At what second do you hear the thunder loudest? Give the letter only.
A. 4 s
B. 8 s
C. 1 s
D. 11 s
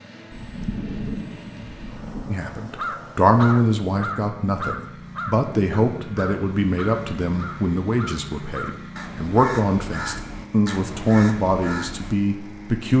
C.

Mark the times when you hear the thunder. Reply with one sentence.
The thunder can be heard from 0.3 to 2.3 s.